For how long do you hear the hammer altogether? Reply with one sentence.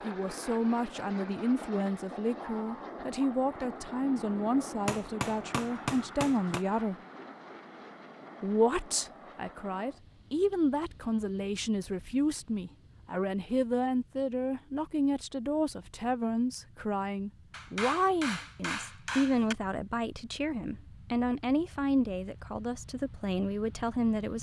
You can hear the hammer for 4 seconds altogether.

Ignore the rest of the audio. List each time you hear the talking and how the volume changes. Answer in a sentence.
You can hear the talking from 0.0 to 7.0 s, at a steady volume; and from 8.4 to 24.3 s, at a steady volume.